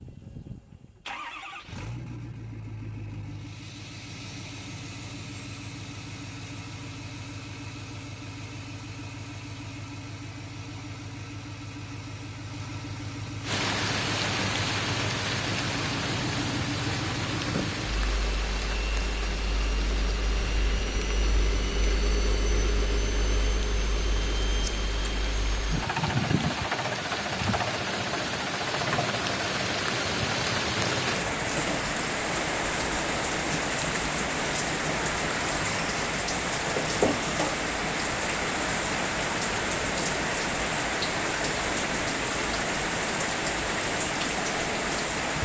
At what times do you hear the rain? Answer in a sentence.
The rain can be heard from 13.4 to 45.4 s.